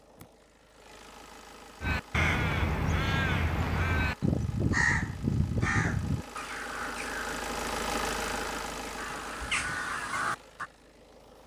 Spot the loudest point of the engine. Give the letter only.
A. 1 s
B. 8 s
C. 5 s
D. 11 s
B.